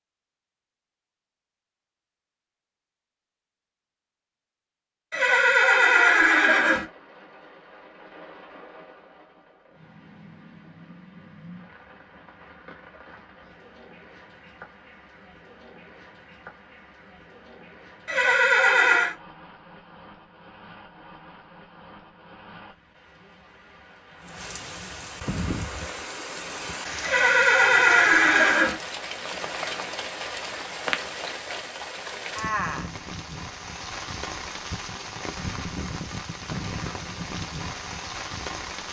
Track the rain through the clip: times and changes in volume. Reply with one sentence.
The rain can be heard from 6.7 to 38.8 s, getting louder.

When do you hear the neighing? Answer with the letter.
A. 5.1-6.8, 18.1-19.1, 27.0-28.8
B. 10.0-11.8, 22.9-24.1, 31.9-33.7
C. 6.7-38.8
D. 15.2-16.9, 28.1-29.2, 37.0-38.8
A.